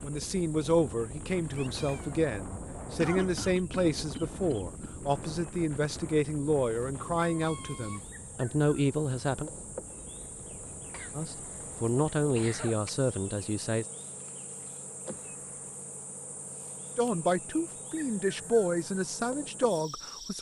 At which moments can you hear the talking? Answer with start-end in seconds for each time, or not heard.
0.0-9.5, 11.2-13.8, 16.9-20.3.